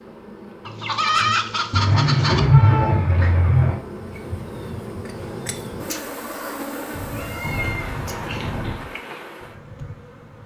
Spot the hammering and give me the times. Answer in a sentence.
The hammering can't be heard in this clip.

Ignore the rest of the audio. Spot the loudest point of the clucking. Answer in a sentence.
The volume of the clucking peaks at 1 second.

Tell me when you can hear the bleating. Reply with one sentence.
You can hear the bleating from 1.7 to 3.8 s and from 6.9 to 8.8 s.